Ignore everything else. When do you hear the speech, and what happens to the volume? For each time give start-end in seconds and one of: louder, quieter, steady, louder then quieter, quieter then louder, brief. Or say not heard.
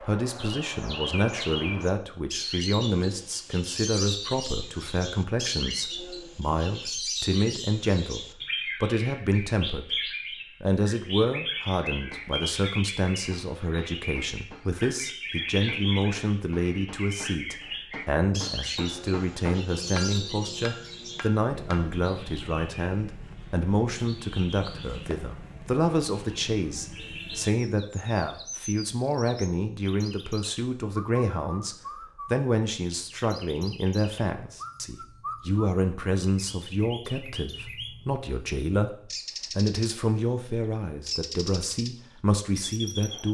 0.0-43.3 steady.